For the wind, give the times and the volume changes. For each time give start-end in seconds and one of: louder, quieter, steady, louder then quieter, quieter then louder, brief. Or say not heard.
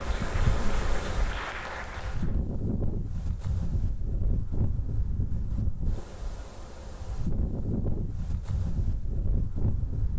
0.0-10.1 steady.